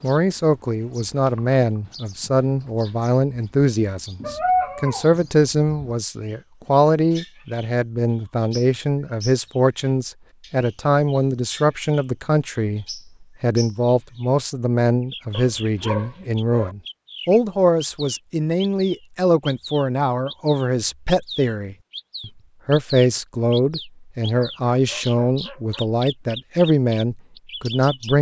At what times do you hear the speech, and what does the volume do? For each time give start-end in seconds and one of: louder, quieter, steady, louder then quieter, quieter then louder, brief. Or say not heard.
0.0-28.1 steady.